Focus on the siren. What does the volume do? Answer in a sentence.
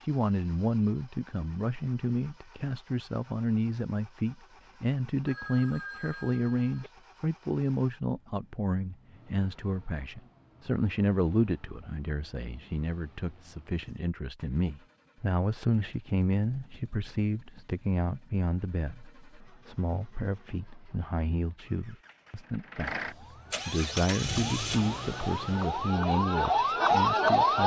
The loudness of the siren goes up.